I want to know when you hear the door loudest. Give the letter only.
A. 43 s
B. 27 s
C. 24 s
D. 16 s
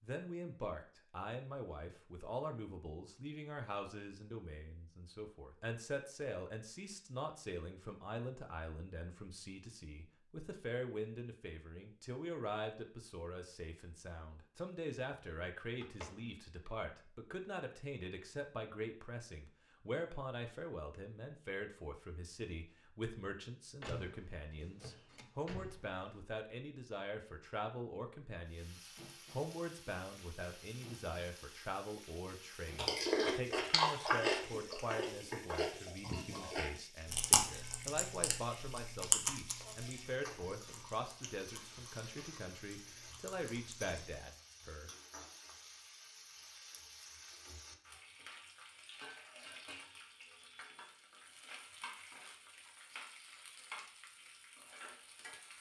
C.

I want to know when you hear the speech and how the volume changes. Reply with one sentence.
The speech can be heard from 0.0 to 44.9 s, at a steady volume.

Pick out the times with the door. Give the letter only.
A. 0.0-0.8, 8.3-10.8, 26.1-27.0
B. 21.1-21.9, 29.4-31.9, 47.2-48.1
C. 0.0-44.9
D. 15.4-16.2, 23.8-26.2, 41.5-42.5
D.